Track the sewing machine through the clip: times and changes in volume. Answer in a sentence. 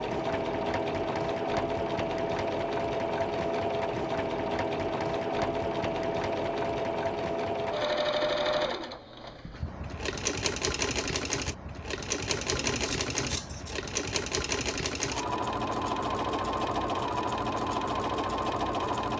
You can hear the sewing machine from 0.0 to 19.1 s, at a steady volume.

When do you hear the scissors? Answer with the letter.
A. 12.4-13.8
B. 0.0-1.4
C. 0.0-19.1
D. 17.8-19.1
A.